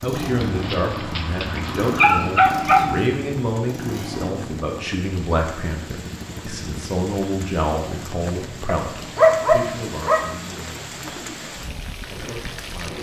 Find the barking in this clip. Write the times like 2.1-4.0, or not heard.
0.4-3.0, 8.7-10.2.